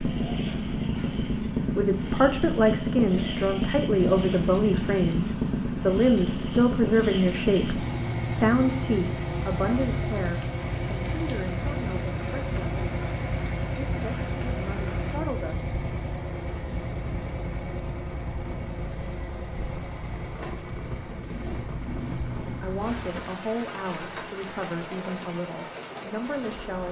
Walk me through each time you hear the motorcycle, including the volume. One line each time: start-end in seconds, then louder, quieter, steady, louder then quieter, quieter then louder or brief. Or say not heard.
0.0-23.3 quieter.